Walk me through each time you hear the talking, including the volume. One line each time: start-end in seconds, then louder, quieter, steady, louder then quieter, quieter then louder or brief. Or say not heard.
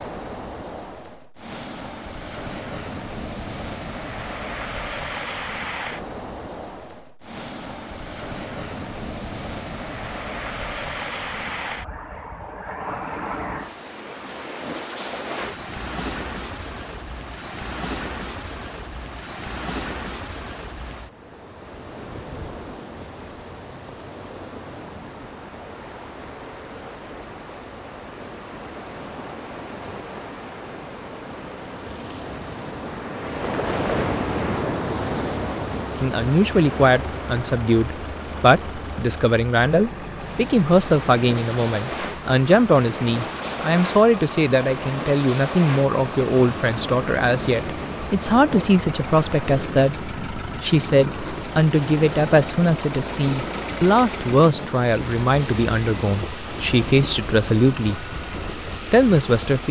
36.0-59.6 steady.